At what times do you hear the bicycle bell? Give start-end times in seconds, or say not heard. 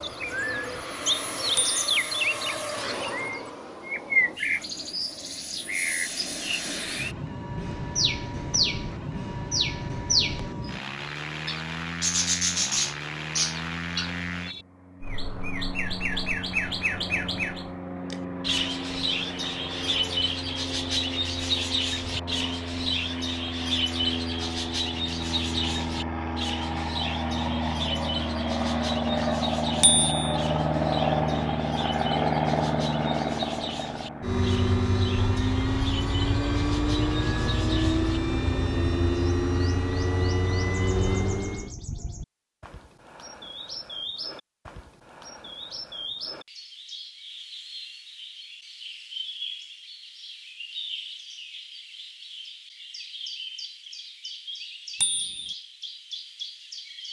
1.6-2.1, 29.8-30.4, 55.0-55.5.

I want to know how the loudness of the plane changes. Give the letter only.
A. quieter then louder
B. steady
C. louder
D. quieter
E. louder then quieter
C.